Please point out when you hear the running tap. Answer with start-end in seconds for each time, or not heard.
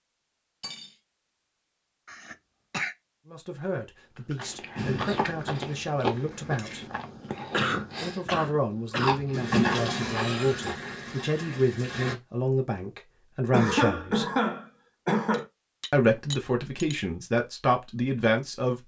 9.3-12.2.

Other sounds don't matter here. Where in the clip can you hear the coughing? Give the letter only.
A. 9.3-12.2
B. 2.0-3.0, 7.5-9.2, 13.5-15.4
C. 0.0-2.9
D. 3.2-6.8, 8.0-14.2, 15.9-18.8
B.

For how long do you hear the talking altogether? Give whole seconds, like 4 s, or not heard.
13 s.